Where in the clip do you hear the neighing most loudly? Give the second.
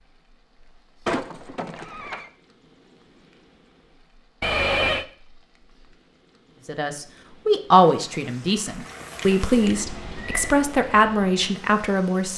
5 s.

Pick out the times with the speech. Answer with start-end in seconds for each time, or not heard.
6.7-12.3.